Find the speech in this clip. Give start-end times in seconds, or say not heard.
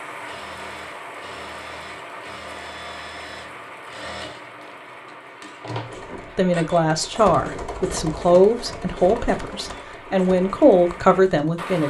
6.3-11.8.